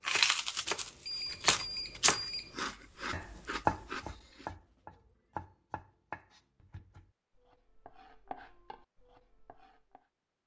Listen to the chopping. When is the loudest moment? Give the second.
4 s.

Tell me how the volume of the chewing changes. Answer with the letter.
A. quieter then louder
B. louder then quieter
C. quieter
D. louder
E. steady
B.